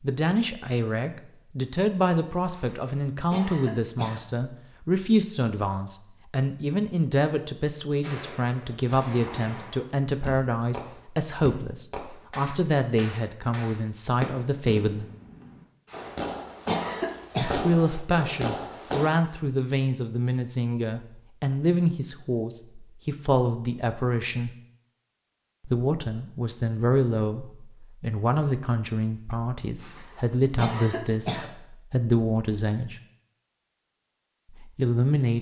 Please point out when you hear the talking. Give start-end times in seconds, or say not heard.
0.0-15.1, 17.4-24.5, 25.6-33.0, 34.6-35.3.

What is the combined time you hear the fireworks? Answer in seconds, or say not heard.
11 s.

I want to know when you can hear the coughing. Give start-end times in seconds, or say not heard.
2.5-4.2, 15.9-17.6, 29.8-31.4.